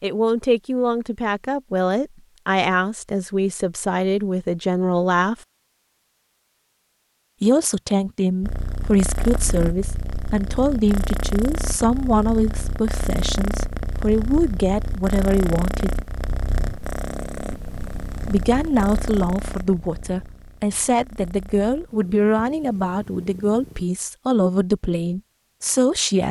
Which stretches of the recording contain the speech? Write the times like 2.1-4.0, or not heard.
0.0-5.3, 7.4-15.9, 18.2-26.2.